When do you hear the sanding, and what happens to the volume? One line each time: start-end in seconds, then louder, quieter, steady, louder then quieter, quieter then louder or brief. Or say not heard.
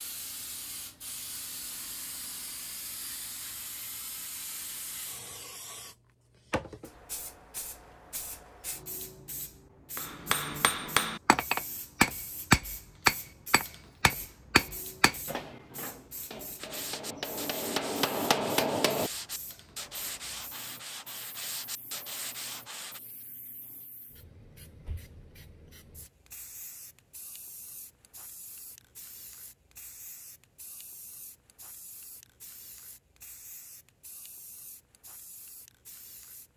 16.6-23.0 steady.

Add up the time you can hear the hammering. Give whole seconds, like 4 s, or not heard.
9 s.